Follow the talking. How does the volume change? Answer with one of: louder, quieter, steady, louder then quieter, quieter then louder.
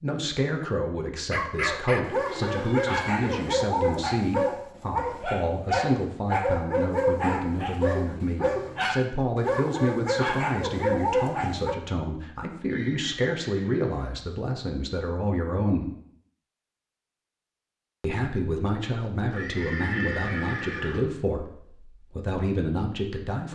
steady.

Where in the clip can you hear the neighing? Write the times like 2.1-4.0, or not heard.
2.1-3.5, 12.7-14.1, 19.3-21.0.